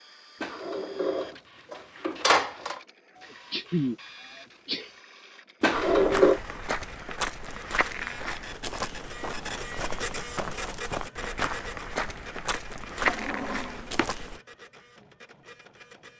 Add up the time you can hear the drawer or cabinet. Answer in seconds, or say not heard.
4 s.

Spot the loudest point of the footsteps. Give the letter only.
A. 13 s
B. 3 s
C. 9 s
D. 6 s
A.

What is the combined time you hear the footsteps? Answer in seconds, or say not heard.
9 s.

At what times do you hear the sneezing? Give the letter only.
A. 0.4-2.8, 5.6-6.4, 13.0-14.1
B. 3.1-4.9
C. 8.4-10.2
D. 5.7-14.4
B.